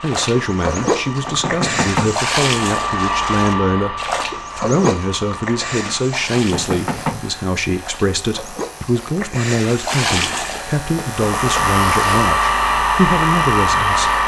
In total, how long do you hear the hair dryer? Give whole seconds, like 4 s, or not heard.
9 s.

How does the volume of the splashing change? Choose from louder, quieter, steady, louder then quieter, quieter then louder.
quieter then louder.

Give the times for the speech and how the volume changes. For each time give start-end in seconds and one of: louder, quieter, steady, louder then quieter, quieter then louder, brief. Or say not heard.
0.0-14.1 steady.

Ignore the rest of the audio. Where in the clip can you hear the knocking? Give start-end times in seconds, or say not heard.
0.8-2.1, 5.8-7.2, 10.9-11.7.